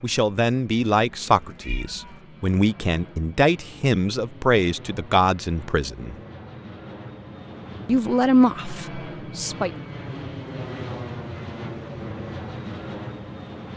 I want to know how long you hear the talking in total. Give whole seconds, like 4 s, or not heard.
8 s.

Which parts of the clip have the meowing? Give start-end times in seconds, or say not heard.
1.6-2.1.